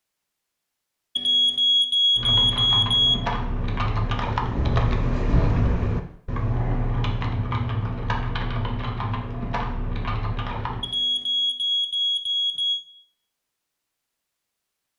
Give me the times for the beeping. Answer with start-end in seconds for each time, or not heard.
1.1-3.1, 10.8-12.8.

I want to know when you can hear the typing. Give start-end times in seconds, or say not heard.
2.1-10.9.